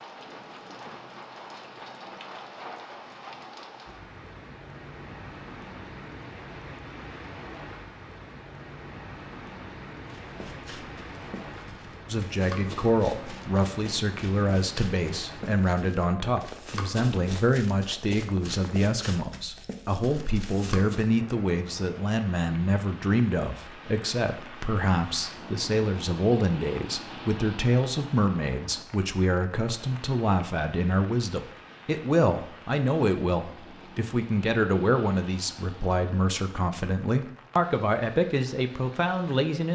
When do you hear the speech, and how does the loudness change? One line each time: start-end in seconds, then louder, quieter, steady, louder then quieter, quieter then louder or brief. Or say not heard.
12.1-39.7 steady.